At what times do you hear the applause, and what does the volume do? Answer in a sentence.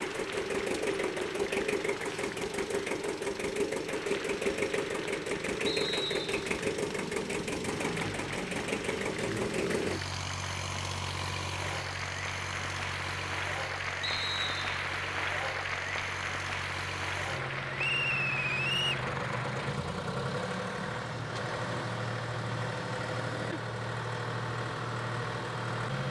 The applause can be heard from 0.0 to 19.8 s, getting louder.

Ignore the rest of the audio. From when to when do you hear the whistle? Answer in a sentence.
You can hear the whistle from 5.7 to 6.3 s, from 14.0 to 14.7 s and from 17.8 to 19.1 s.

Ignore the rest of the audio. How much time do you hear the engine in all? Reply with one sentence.
You can hear the engine for 26 seconds altogether.